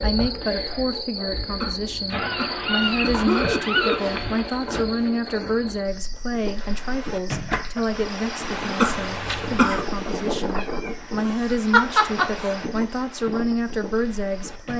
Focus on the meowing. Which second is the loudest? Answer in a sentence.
The loudest moment of the meowing is at 12 seconds.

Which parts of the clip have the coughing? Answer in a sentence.
You can hear the coughing from 1.6 to 4.0 s and from 8.8 to 9.8 s.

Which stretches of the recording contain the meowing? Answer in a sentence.
You can hear the meowing from 2.1 to 4.6 s and from 10.6 to 12.6 s.